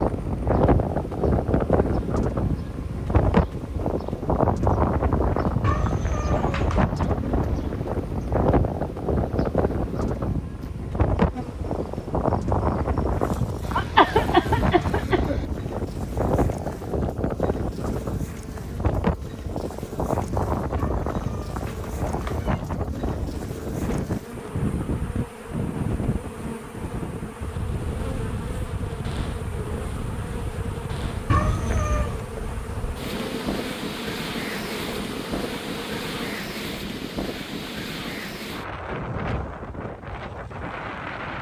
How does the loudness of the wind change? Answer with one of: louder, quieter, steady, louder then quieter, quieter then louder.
quieter.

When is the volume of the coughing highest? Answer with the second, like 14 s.
14 s.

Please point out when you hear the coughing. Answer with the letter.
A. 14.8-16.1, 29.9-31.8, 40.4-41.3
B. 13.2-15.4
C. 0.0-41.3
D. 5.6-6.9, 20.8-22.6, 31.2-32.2
B.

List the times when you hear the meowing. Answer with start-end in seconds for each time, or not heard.
5.6-6.9, 20.8-22.6, 31.2-32.2.